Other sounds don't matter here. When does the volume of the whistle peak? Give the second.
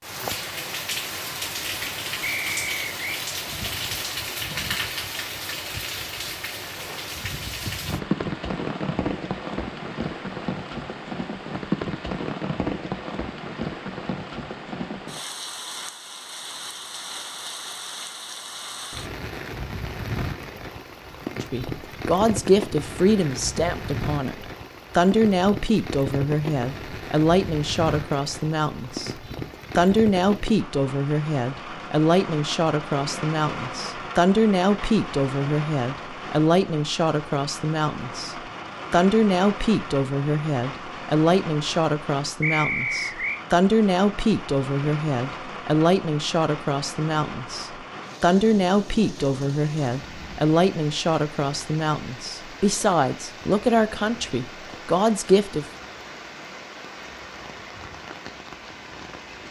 43 s.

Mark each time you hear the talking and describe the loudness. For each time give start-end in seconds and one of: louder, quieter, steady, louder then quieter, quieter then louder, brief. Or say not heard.
21.4-55.6 steady.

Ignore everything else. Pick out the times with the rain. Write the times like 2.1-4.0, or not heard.
0.0-59.4.